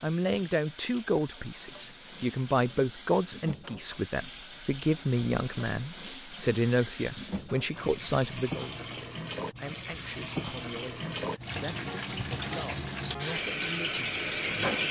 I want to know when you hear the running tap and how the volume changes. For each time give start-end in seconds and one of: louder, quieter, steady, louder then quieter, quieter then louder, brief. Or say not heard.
0.0-14.8 louder.